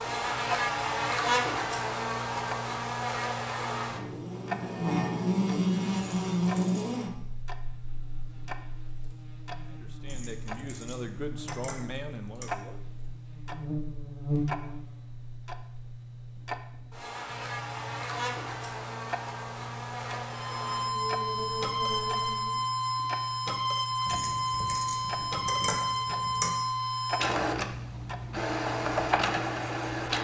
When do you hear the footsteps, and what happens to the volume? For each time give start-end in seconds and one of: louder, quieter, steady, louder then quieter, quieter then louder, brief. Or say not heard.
not heard.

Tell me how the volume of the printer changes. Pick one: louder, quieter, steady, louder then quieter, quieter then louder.
steady.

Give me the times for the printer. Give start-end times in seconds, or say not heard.
20.3-30.1.